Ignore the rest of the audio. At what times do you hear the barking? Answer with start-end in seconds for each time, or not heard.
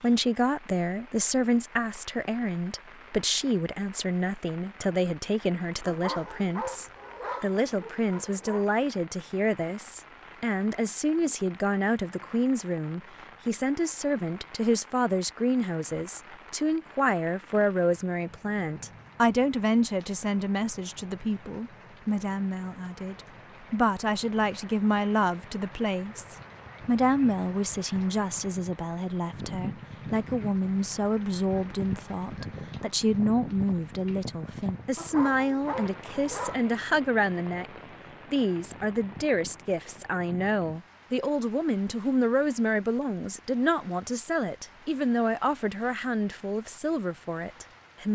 5.8-8.7, 35.0-36.7.